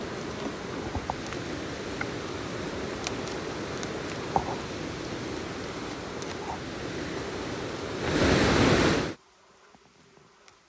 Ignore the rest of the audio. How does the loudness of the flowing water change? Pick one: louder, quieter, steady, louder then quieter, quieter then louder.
louder.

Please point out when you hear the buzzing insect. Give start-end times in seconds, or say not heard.
0.0-10.6.